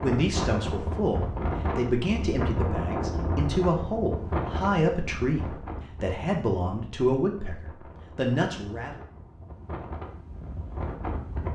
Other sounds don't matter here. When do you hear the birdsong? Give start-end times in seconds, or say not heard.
not heard.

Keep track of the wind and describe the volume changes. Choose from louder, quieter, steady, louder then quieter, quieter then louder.
quieter then louder.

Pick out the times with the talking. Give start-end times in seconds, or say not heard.
0.0-9.0.